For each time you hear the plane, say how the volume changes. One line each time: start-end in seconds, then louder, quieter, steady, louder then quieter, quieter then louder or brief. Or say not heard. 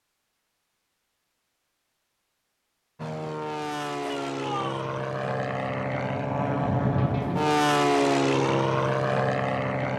3.0-9.9 louder.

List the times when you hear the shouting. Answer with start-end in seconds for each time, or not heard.
4.0-4.9.